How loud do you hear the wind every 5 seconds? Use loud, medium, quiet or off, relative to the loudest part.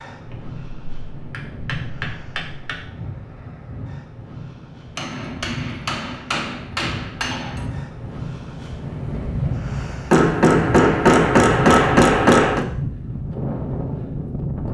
medium, loud, loud.